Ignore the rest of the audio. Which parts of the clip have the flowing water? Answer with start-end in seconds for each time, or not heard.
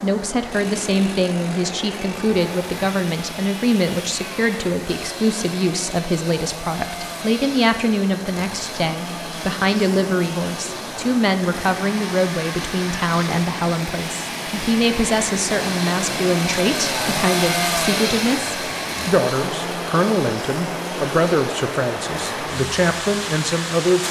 0.0-24.0.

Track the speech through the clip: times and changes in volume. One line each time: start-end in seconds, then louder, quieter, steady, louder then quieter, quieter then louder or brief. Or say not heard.
0.0-24.0 steady.